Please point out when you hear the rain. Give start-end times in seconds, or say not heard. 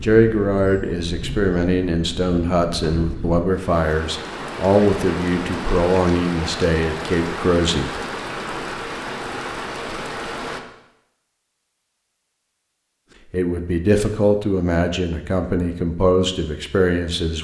0.0-10.6.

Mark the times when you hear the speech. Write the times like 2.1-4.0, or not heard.
0.0-7.9, 13.3-17.4.